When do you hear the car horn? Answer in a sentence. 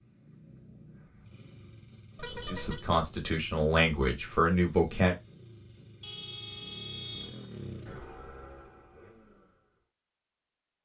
The car horn can be heard from 2.1 to 2.9 s and from 6.0 to 7.5 s.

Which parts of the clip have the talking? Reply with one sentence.
You can hear the talking from 2.5 to 5.2 s.